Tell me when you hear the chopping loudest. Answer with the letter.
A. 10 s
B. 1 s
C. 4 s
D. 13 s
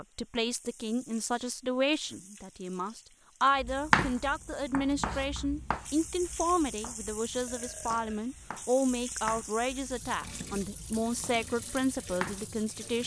C.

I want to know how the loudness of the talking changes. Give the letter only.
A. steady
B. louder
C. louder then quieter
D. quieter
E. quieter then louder
A.